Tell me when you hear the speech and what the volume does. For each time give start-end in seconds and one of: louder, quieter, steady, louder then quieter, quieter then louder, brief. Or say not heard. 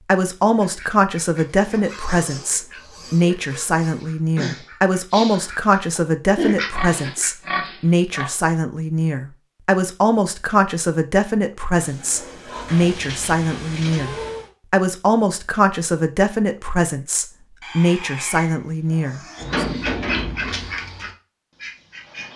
0.0-19.6 steady.